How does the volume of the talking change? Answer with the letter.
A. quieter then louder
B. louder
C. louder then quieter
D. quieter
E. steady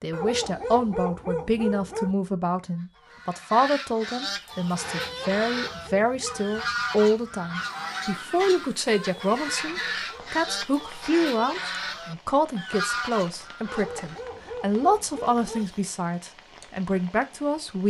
E.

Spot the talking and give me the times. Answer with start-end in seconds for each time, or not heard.
0.0-17.8.